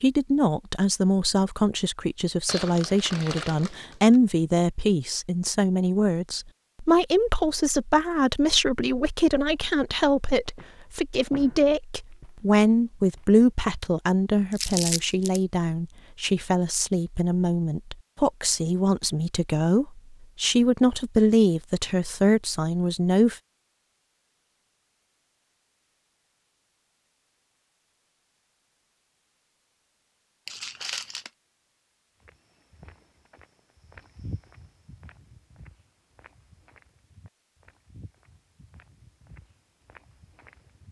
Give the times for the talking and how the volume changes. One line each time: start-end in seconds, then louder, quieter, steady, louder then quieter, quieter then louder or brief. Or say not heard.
0.0-23.4 steady.